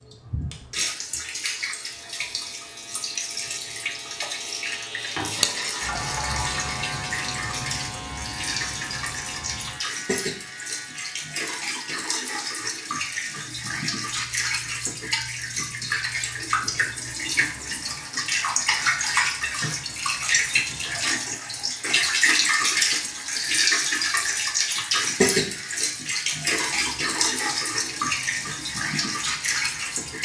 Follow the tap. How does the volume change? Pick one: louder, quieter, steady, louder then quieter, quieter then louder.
louder.